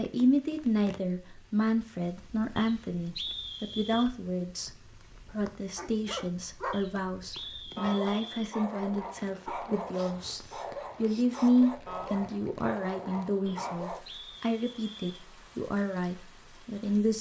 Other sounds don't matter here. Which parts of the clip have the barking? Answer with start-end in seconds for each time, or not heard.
5.8-14.1.